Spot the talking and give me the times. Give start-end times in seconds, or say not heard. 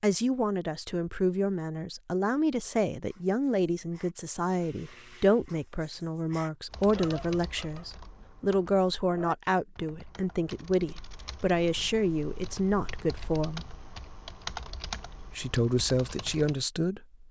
0.0-13.7, 15.2-17.2.